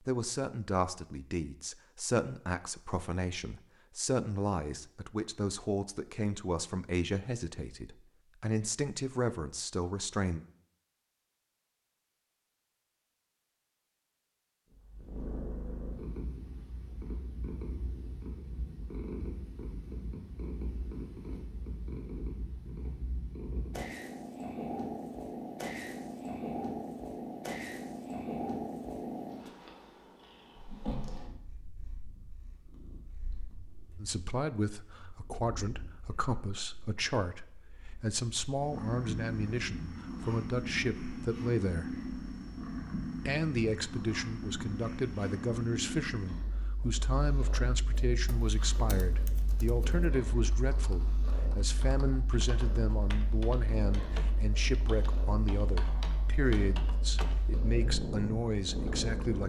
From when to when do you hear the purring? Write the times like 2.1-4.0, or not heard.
14.7-59.4.